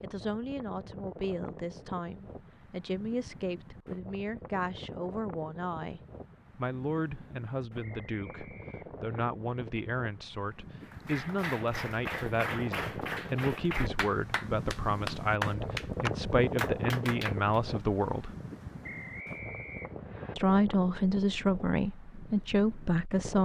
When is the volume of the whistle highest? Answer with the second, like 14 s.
19 s.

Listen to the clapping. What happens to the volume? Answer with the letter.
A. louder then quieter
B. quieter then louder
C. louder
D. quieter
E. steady
C.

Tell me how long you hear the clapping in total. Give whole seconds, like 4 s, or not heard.
7 s.